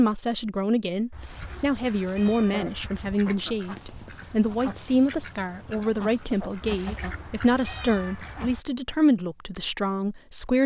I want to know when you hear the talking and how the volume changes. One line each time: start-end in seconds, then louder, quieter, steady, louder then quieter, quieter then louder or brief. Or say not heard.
0.0-10.6 steady.